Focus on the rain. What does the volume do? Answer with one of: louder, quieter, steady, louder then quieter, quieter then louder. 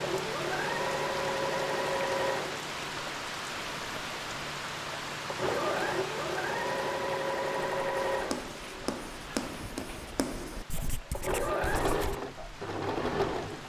quieter.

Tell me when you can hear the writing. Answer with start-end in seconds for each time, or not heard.
8.1-12.2.